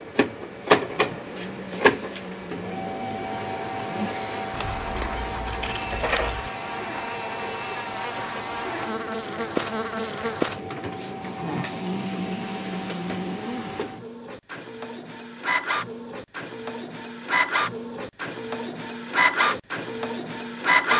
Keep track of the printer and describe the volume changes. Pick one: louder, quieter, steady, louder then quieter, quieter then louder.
quieter then louder.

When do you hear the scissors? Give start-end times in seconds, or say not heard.
4.5-6.5.